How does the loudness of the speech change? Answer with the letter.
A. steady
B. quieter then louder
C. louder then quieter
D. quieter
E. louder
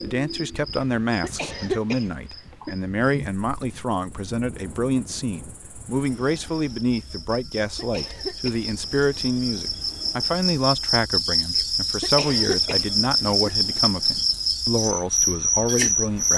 A.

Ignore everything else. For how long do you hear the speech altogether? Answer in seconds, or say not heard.
16 s.